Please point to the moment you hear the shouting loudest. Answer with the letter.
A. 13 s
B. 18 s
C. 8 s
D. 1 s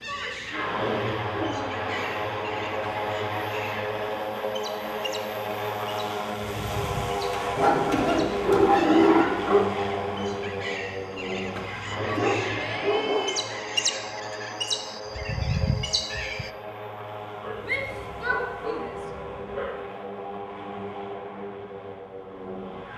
B.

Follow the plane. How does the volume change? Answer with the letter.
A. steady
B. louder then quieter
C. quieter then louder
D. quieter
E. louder
D.